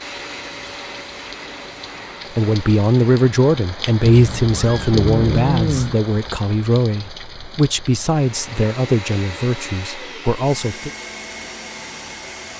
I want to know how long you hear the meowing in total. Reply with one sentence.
You can hear the meowing for 2 seconds altogether.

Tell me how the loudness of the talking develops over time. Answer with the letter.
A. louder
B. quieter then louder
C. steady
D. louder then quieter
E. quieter
E.